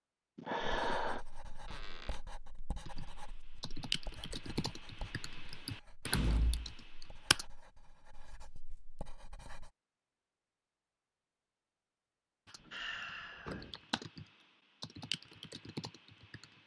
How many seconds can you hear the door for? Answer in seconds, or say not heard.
2 s.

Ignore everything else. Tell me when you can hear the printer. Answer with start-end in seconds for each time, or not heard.
not heard.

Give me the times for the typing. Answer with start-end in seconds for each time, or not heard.
2.9-7.5, 12.4-16.6.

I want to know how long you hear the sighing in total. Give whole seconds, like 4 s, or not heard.
2 s.